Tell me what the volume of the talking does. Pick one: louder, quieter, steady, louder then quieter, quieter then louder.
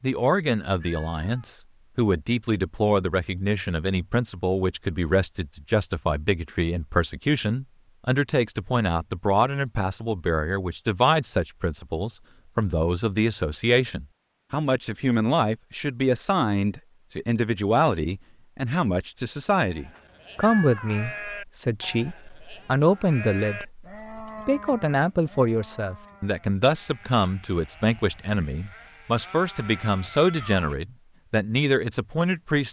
steady.